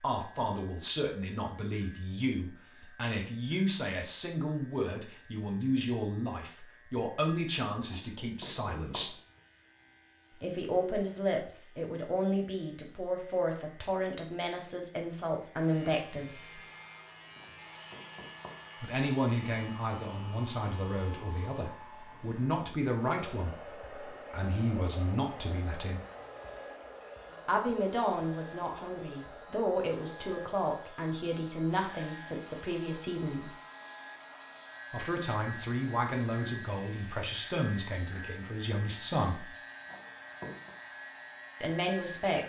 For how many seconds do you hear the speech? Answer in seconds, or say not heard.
34 s.